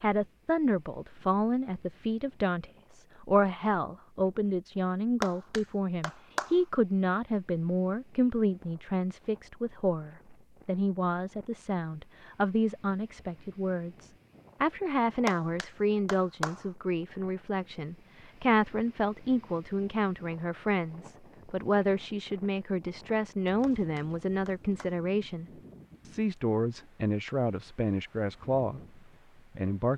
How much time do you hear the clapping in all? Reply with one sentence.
The clapping can be heard for 4 seconds in total.